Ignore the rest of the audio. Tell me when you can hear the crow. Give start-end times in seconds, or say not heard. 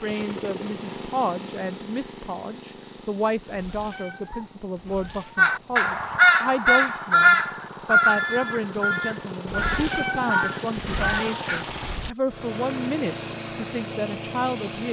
5.3-11.7.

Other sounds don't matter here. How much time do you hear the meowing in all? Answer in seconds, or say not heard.
5 s.